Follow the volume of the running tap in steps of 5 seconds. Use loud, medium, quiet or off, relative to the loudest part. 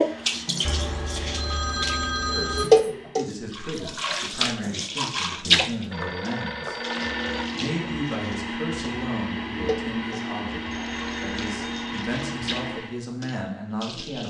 loud, loud, quiet.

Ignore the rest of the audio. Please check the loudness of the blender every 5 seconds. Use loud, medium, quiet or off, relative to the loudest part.
quiet, loud, loud.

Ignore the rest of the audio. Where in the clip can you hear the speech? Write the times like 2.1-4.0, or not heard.
2.3-6.8, 7.5-14.2.